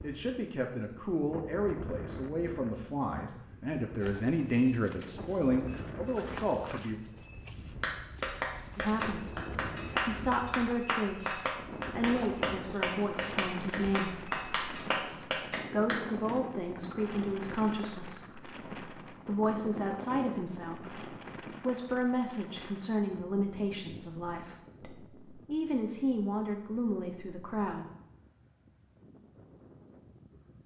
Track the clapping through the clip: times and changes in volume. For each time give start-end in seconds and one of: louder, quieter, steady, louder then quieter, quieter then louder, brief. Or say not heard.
7.8-16.4 steady.